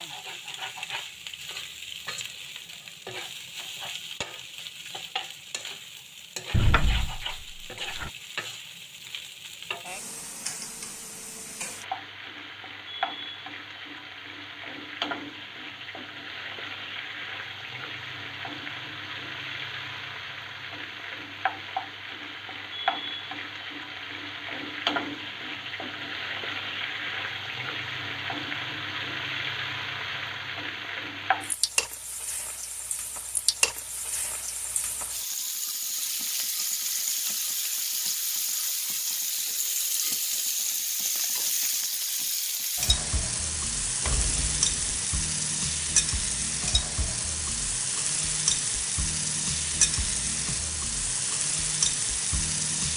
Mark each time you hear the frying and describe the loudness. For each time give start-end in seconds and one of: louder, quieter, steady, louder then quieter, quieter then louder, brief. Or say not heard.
0.0-52.9 louder.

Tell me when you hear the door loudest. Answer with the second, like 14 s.
7 s.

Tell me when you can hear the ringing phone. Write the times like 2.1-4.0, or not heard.
not heard.